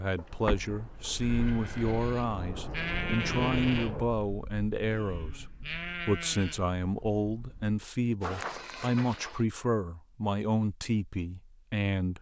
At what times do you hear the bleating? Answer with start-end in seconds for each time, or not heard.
0.3-9.4.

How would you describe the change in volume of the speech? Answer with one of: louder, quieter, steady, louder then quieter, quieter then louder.
steady.